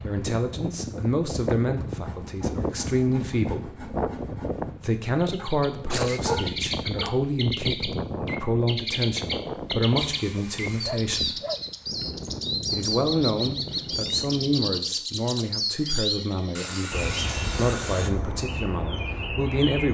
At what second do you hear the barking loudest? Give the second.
6 s.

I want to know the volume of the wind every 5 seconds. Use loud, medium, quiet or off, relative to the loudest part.
loud, loud, medium, off.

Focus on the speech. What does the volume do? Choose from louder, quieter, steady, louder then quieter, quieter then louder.
steady.